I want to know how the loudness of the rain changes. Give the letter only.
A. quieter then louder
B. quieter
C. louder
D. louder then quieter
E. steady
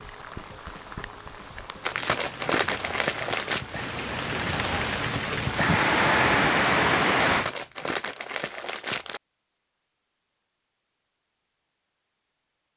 C.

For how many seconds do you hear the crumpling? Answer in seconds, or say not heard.
4 s.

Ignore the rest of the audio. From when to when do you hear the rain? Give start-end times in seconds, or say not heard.
0.0-7.5.